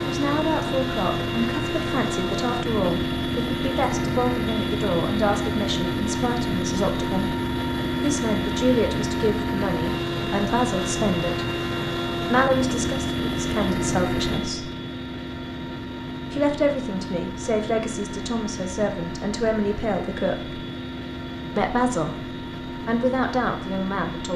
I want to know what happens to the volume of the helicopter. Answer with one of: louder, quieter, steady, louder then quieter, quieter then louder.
quieter.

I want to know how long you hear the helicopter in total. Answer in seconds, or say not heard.
24 s.